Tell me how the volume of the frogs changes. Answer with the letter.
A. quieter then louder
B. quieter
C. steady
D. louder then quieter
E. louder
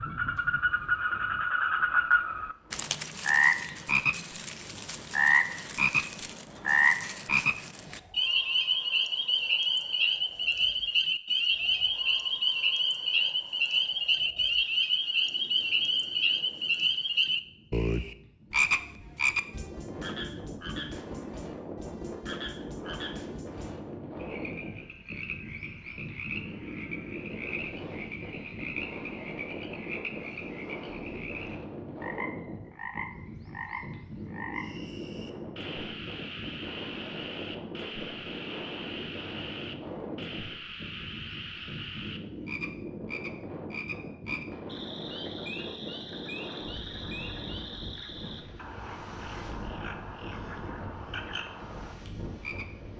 B.